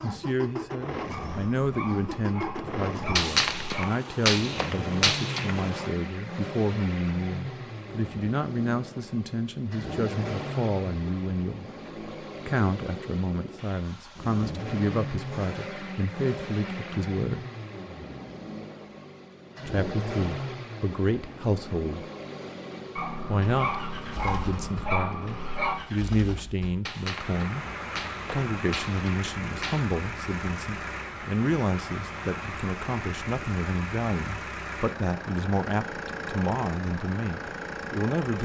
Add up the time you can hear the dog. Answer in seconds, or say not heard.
6 s.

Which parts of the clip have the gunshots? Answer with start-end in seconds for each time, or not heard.
3.1-5.9, 26.9-29.9.